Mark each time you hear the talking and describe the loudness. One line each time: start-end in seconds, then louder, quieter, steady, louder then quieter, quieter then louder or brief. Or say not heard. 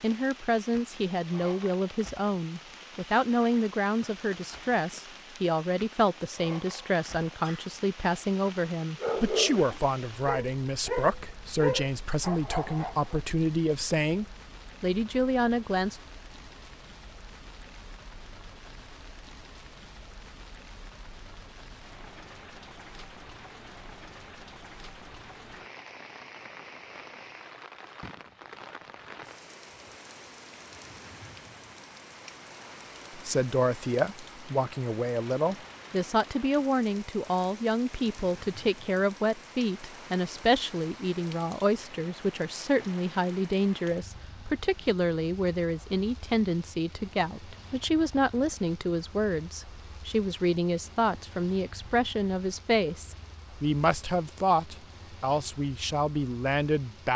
0.0-15.9 steady
33.1-57.1 steady.